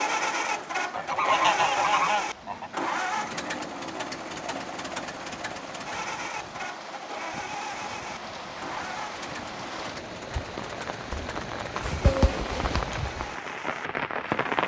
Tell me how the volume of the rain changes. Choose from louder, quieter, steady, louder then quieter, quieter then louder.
louder.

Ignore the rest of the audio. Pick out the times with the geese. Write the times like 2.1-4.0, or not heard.
0.9-2.7, 11.1-13.0.